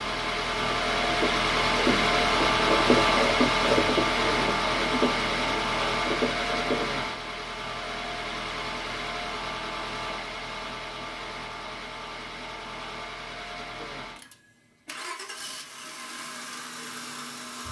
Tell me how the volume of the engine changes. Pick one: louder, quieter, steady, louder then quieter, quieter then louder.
quieter.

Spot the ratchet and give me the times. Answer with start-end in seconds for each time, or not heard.
0.4-7.0.